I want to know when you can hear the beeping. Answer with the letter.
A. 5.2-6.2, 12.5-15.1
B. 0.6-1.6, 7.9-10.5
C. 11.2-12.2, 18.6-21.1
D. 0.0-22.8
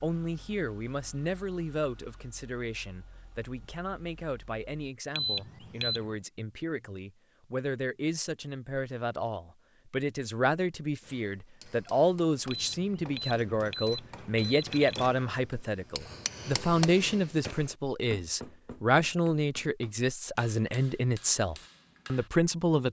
A.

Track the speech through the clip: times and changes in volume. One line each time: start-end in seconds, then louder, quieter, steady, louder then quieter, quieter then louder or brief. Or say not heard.
0.0-22.8 louder.